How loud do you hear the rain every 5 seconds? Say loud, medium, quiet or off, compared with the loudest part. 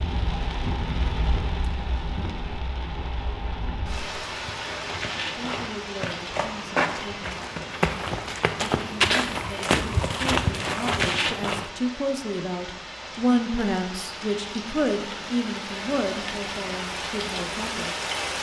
loud, medium, medium, loud.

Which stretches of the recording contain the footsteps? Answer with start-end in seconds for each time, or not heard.
4.2-11.7.